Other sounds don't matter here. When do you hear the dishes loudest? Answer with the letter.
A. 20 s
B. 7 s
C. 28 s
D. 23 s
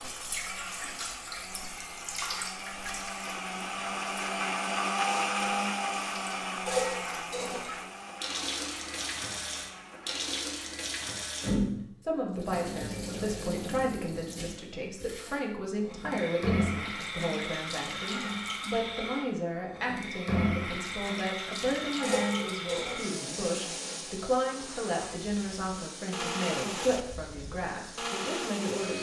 B.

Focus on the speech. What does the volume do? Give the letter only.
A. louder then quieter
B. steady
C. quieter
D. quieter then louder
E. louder
B.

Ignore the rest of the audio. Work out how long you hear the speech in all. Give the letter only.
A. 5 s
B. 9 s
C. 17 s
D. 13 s
C.